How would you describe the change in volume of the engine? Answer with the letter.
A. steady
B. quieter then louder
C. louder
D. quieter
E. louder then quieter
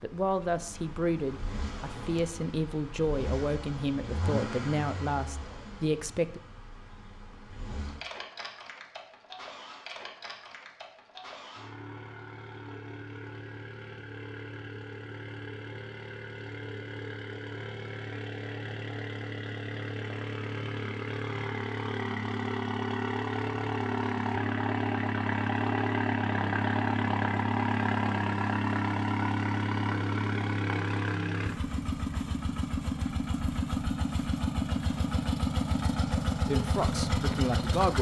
C.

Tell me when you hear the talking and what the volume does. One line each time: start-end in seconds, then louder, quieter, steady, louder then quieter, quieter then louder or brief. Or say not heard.
0.0-6.4 steady
36.5-37.9 brief.